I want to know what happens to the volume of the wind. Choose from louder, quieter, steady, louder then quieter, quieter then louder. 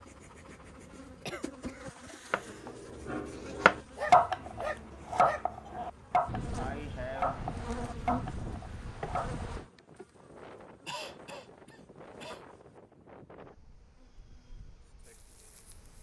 quieter.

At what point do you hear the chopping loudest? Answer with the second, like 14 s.
4 s.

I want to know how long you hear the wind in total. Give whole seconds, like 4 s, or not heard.
10 s.